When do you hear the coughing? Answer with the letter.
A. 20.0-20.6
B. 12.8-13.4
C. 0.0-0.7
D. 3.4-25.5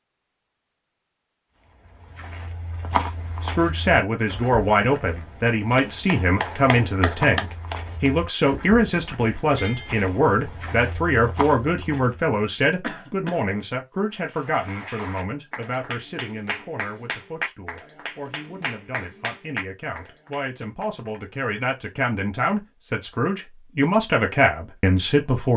B.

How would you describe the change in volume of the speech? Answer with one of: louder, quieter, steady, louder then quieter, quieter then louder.
quieter then louder.